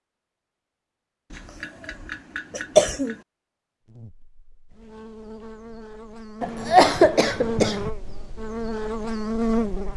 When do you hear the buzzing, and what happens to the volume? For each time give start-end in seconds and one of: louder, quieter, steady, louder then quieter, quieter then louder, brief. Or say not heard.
3.9-9.9 louder.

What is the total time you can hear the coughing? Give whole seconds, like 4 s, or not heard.
3 s.